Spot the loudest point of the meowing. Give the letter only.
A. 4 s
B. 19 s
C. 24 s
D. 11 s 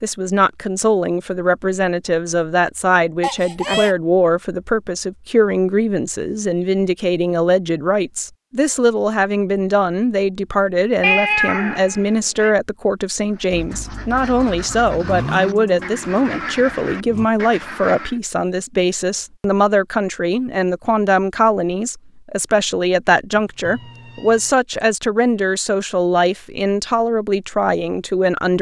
D.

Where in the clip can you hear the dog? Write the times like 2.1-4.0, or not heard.
not heard.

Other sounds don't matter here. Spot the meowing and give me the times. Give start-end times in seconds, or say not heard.
3.2-4.0, 11.0-12.5, 23.3-24.6.